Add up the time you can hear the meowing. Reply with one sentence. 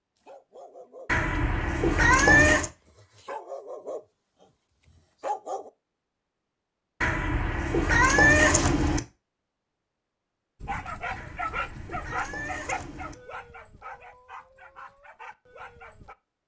You can hear the meowing for 6 seconds altogether.